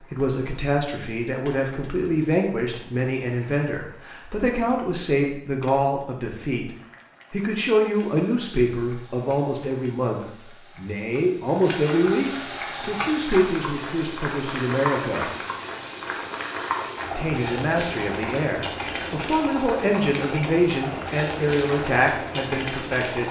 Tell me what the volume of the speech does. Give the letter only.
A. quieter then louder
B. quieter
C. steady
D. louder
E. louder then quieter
C.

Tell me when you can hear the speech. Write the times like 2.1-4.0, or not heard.
0.0-6.7, 7.3-15.3, 17.1-23.2.